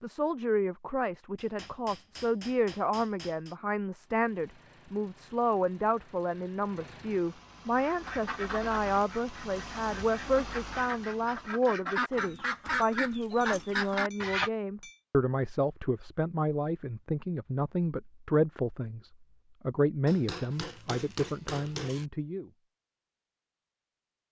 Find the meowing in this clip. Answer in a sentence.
The meowing can't be heard in this clip.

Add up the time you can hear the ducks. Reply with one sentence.
You can hear the ducks for 7 seconds altogether.